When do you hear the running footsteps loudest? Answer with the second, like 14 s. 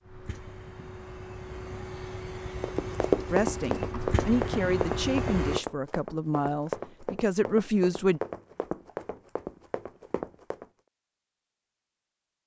3 s.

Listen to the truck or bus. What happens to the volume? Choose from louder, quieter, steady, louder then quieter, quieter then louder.
louder.